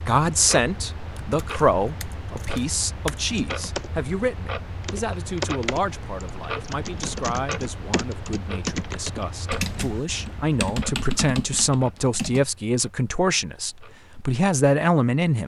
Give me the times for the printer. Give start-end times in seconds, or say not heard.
not heard.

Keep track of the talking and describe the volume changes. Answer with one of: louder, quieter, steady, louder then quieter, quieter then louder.
quieter then louder.